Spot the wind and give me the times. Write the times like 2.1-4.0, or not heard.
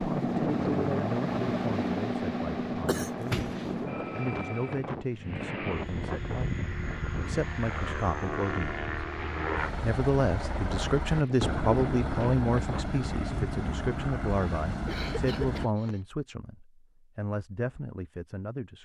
0.0-12.8.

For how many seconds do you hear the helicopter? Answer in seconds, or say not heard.
16 s.